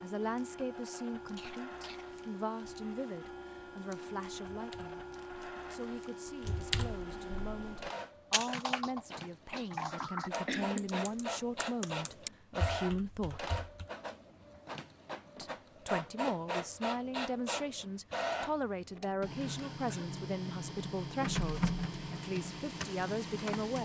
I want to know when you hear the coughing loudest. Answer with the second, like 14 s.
11 s.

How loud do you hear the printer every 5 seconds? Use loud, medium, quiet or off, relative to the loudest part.
medium, medium, loud, loud, loud.